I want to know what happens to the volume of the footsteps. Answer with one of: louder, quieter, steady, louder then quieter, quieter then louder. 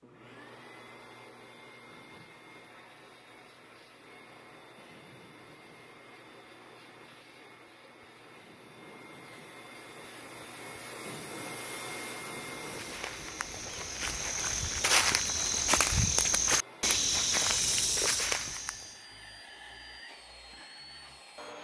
louder.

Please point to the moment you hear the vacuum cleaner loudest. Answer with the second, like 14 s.
12 s.